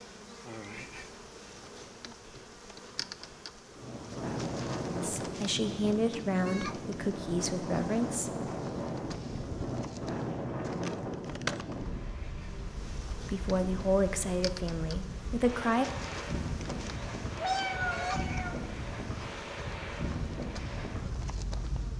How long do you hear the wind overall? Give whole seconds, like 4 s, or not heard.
18 s.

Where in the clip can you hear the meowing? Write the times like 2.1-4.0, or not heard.
17.4-18.6.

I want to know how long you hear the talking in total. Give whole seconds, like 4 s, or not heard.
6 s.